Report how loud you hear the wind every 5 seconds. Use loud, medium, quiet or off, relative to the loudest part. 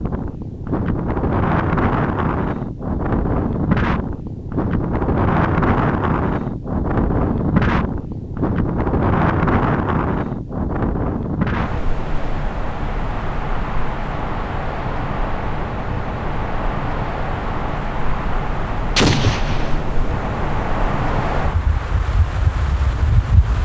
loud, loud, medium, medium, medium.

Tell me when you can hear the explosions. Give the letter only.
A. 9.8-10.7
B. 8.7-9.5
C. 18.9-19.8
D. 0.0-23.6
C.